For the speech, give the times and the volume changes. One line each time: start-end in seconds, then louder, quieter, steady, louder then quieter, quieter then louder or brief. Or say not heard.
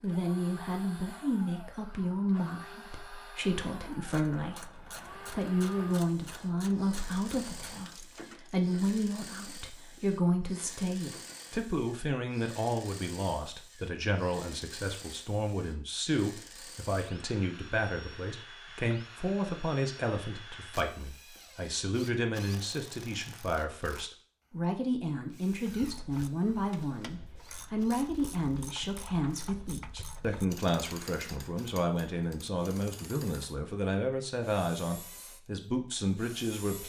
0.0-36.8 steady.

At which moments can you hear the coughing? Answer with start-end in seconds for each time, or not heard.
not heard.